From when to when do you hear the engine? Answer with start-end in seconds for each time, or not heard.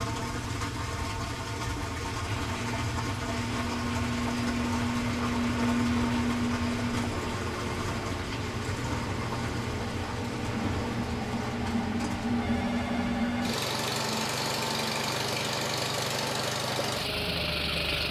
0.0-18.0.